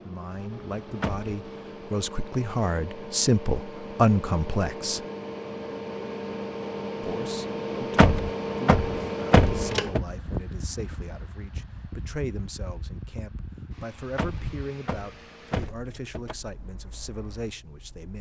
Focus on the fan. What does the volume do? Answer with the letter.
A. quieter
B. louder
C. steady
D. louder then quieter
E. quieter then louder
D.